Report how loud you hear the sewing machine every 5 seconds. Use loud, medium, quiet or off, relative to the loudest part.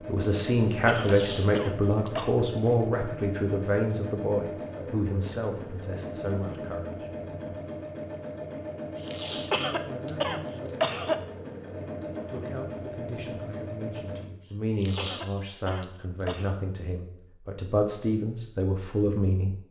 loud, loud, loud, off.